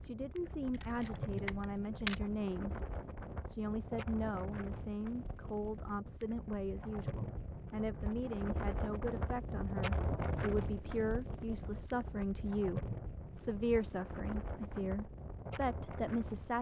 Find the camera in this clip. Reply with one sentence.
The camera can be heard from 0.7 to 2.1 s.